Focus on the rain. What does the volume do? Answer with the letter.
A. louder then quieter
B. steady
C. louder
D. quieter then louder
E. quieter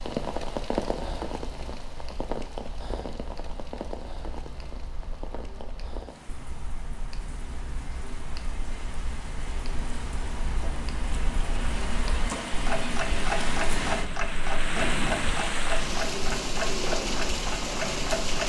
D.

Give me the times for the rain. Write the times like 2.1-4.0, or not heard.
0.0-18.4.